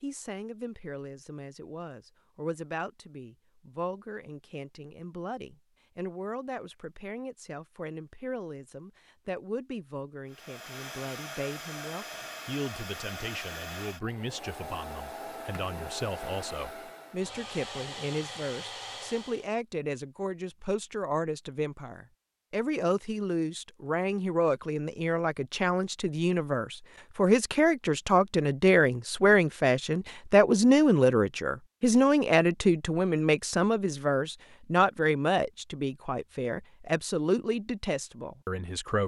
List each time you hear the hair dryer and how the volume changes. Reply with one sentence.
You can hear the hair dryer from 10.2 to 19.5 s, at a steady volume.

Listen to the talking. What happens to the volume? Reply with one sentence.
The loudness of the talking goes up.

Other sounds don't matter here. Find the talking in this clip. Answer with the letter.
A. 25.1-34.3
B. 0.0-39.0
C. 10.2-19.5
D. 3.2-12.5
B.